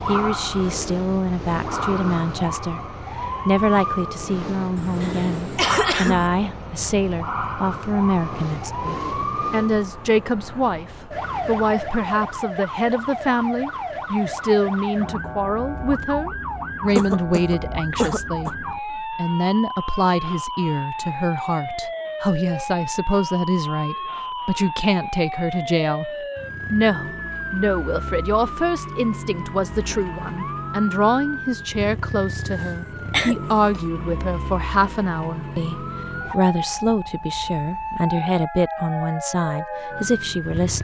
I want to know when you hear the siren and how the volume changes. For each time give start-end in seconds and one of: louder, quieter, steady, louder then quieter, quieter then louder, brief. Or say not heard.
0.0-40.7 steady.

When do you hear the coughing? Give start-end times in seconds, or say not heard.
4.8-6.3, 16.9-18.5, 32.4-33.8.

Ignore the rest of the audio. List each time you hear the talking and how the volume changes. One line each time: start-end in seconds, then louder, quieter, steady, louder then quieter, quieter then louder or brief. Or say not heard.
0.1-2.8 brief
3.5-26.1 steady
26.7-40.7 steady.